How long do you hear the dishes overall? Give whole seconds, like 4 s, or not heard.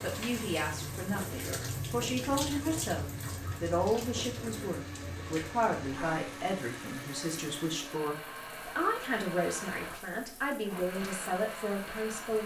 not heard.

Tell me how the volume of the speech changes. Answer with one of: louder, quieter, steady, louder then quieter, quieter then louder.
steady.